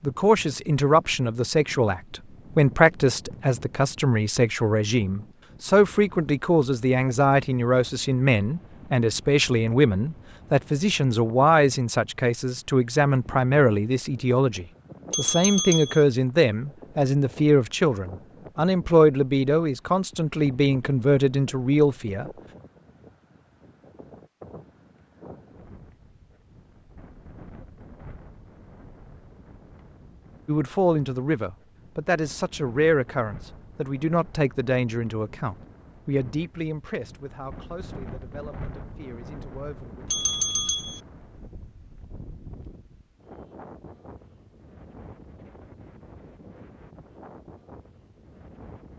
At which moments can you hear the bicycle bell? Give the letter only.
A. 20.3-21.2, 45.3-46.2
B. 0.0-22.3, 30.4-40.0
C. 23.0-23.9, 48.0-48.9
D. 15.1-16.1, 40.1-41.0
D.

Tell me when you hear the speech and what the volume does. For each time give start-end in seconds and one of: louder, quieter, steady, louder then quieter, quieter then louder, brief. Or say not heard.
0.0-22.3 steady
30.4-40.0 quieter.